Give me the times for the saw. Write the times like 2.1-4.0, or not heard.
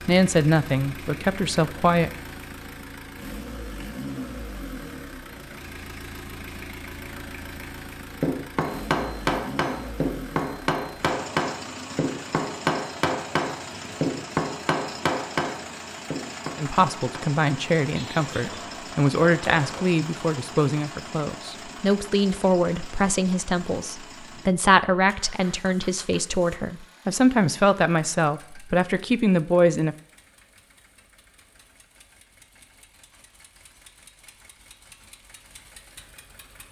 not heard.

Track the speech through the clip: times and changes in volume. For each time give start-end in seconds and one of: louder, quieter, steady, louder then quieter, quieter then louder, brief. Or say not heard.
0.1-2.1 brief
16.6-29.9 steady.